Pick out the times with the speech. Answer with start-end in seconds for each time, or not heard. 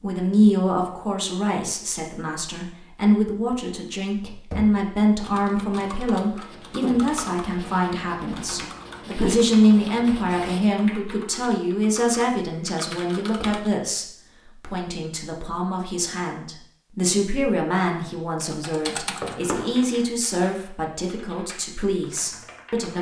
0.0-22.9.